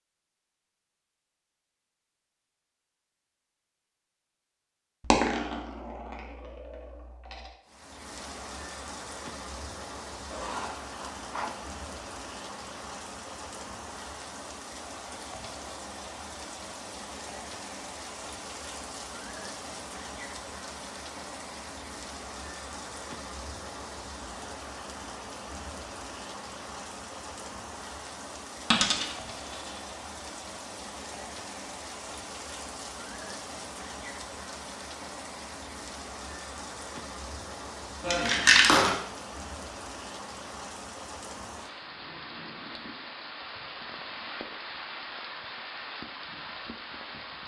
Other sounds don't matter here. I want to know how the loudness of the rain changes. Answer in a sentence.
The volume of the rain stays about the same.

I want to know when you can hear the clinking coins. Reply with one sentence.
The clinking coins can be heard from 5.1 to 7.4 s, from 28.7 to 29.7 s and from 38.0 to 39.0 s.